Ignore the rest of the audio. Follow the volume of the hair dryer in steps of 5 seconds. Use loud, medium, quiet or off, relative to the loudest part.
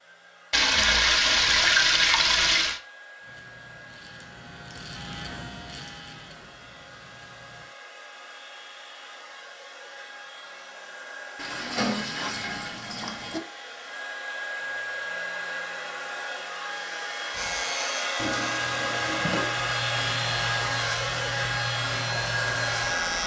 quiet, quiet, medium, loud, loud.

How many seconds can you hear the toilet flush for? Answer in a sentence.
You can hear the toilet flush for 6 seconds altogether.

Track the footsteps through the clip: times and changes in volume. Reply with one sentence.
The footsteps can't be heard in this clip.